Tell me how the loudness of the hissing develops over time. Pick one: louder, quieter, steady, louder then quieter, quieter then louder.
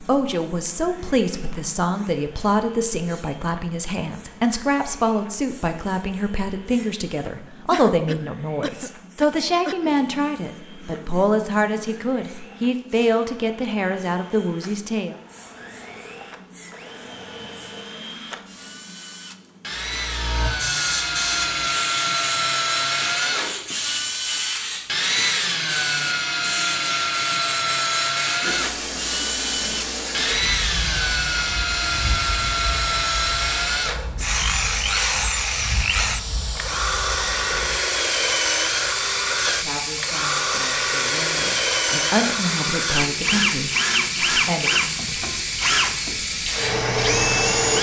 louder.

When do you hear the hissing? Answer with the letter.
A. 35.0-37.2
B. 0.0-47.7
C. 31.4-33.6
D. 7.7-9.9
B.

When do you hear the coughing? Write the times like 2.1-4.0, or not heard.
7.7-9.9.